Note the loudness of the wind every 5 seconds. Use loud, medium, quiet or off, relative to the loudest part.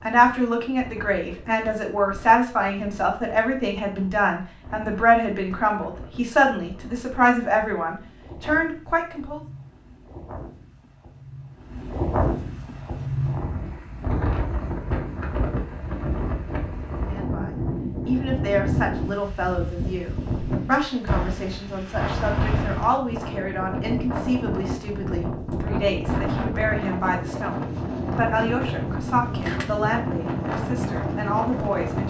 quiet, quiet, loud, loud, loud, loud, loud.